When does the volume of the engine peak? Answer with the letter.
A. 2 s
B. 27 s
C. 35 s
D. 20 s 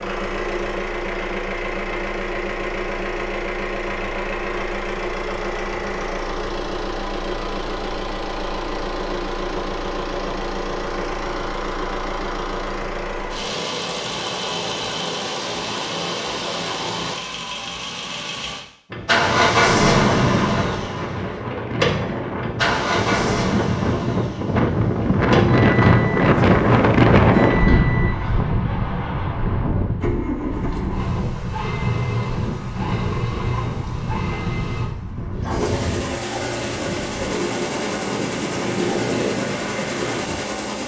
D.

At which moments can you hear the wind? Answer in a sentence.
You can hear the wind from 18.9 to 40.5 s.